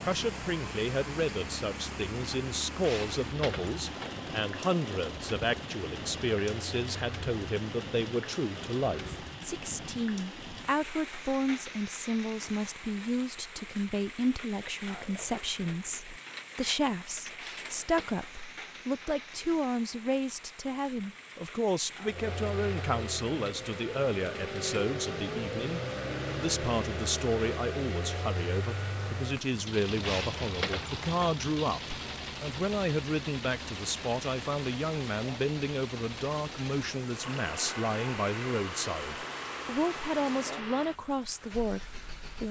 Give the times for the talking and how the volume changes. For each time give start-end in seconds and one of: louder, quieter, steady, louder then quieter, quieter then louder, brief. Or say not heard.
0.0-42.4 steady.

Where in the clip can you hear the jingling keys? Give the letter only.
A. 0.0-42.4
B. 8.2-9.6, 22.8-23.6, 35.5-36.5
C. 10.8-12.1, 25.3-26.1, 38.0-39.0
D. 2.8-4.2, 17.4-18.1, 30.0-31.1
D.